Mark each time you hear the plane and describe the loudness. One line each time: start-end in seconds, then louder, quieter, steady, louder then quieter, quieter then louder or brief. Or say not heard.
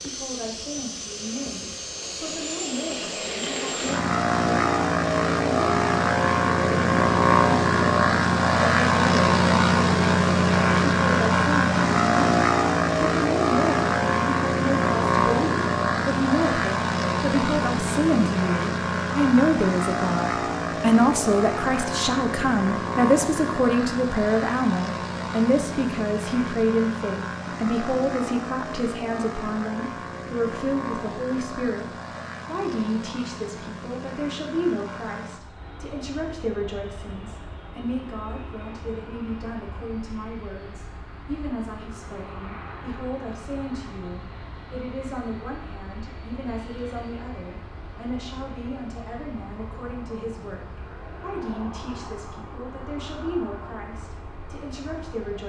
0.0-55.4 quieter.